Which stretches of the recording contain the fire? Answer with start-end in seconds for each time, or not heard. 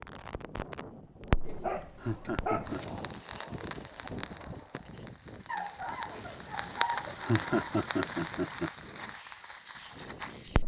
0.0-10.6.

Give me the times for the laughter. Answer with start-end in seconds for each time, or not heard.
1.8-3.0, 7.0-8.7.